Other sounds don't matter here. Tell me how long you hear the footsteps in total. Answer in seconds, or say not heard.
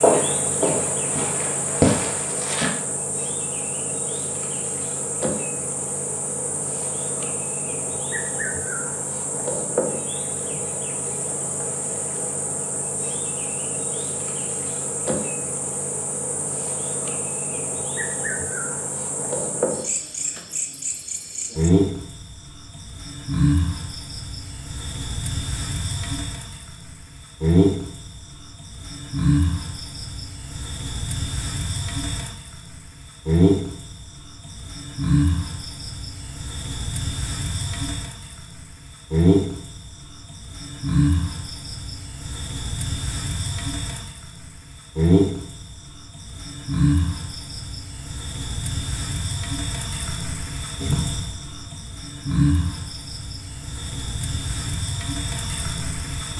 3 s.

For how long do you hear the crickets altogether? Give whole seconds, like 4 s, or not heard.
56 s.